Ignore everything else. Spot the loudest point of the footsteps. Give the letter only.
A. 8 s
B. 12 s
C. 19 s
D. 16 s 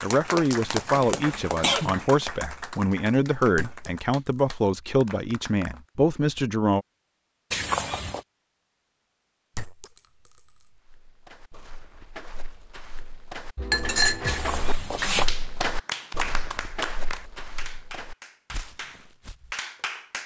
D.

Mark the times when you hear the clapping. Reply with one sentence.
You can hear the clapping from 0.0 to 5.8 s and from 15.0 to 20.2 s.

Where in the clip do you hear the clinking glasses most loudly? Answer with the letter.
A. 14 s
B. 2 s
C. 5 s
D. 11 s
A.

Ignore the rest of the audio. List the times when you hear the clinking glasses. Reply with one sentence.
You can hear the clinking glasses from 3.5 to 4.5 s, from 9.6 to 10.7 s and from 13.6 to 14.8 s.